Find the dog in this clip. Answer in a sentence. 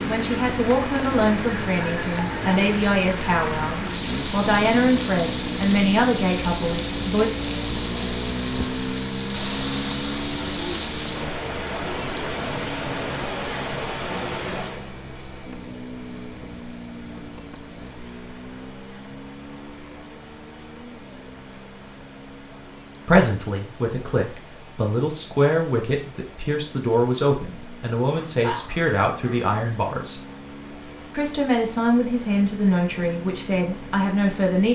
The dog can be heard from 28.1 to 29.4 s.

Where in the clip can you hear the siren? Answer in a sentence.
The siren can't be heard in this clip.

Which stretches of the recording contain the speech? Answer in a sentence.
The speech can be heard from 0.0 to 7.3 s, from 23.1 to 30.2 s and from 31.1 to 34.6 s.